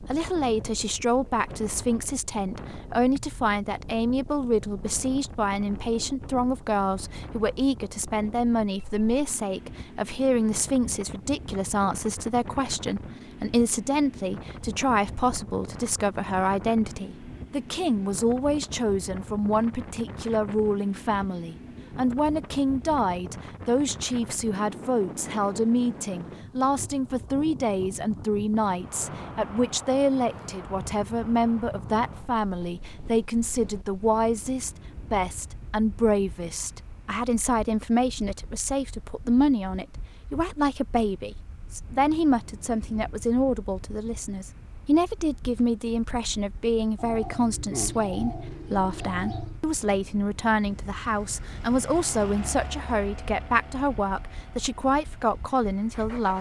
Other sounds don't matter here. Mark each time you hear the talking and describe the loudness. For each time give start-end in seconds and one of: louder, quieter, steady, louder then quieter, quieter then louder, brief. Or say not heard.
0.0-56.3 steady.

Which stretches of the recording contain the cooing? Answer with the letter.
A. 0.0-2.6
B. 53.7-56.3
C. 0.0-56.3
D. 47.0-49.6
D.